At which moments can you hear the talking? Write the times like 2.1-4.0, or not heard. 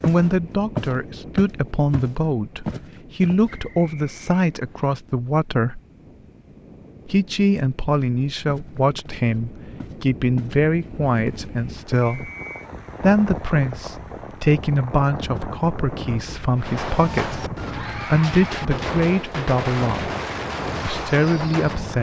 0.0-5.8, 7.0-12.3, 13.0-20.1, 20.9-21.9.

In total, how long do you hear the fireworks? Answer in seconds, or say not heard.
5 s.